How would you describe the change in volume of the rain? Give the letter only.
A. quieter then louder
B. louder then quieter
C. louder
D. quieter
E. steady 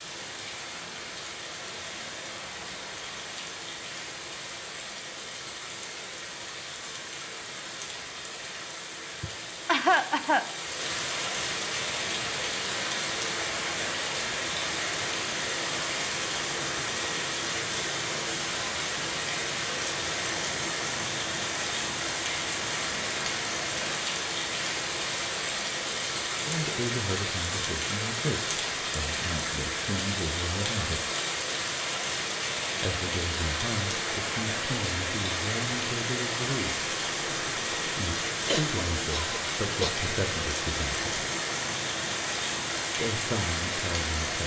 C.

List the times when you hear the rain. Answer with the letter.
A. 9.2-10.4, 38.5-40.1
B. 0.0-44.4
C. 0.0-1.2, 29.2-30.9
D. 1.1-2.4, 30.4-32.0
B.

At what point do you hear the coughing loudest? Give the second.
10 s.